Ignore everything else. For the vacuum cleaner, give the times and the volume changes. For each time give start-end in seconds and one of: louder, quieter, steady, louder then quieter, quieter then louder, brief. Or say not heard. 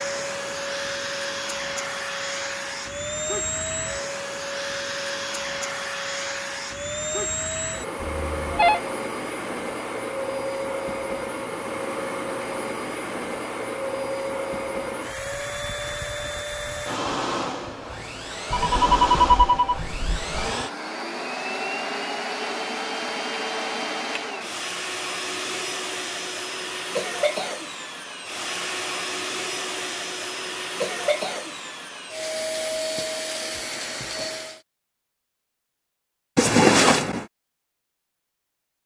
0.0-34.6 steady.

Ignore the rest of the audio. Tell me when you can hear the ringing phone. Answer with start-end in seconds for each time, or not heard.
8.0-8.8, 18.5-20.4, 36.4-37.2.